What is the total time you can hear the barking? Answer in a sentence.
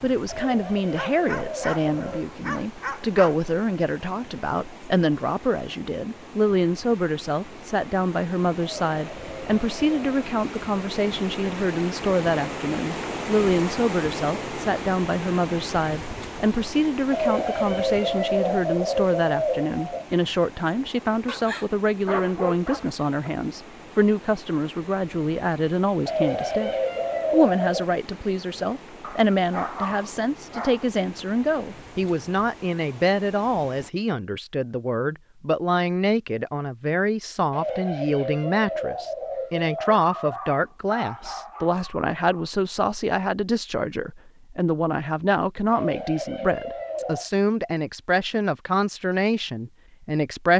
The barking can be heard for 9 seconds in total.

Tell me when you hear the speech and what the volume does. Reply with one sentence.
You can hear the speech from 0.0 to 50.5 s, at a steady volume.